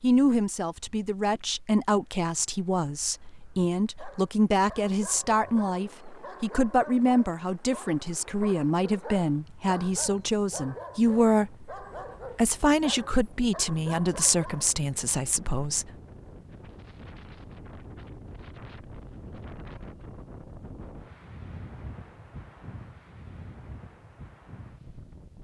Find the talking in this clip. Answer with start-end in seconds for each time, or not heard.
0.0-11.7, 12.3-15.8.